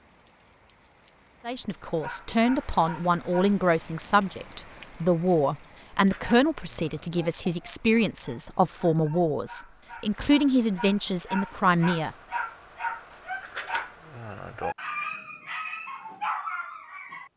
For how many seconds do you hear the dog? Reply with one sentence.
You can hear the dog for 13 seconds altogether.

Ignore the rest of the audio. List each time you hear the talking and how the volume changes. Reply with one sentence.
The talking can be heard from 1.4 to 12.2 s, at a steady volume.